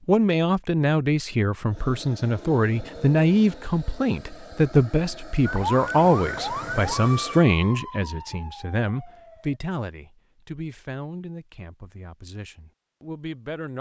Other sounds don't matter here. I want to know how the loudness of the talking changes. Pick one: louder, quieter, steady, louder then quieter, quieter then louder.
quieter.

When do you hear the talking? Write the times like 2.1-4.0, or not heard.
0.1-13.7.